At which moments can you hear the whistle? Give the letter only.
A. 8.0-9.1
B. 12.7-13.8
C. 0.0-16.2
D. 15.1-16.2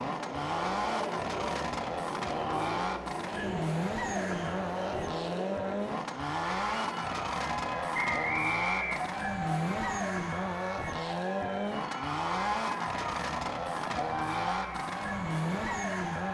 A.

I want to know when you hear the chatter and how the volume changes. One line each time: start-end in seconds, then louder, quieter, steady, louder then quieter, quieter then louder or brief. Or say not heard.
0.0-16.2 steady.